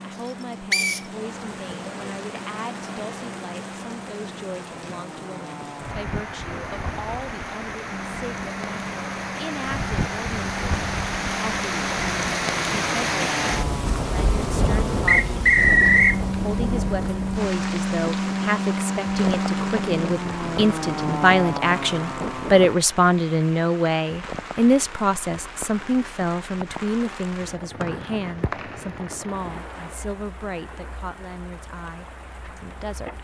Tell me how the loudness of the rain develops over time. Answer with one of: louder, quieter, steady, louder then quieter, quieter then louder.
louder then quieter.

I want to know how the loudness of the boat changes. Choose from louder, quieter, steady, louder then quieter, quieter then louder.
louder.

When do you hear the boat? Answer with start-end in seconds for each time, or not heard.
0.0-22.8.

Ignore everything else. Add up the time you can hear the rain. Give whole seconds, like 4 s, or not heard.
33 s.